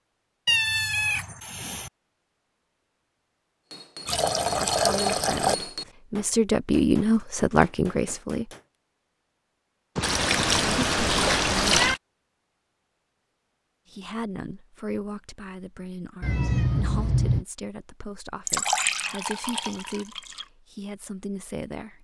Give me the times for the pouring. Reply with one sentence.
You can hear the pouring from 4.0 to 5.5 s, from 10.0 to 12.0 s and from 18.4 to 20.4 s.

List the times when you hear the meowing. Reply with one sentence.
The meowing can be heard from 0.5 to 1.9 s, from 9.9 to 11.9 s and from 16.2 to 17.4 s.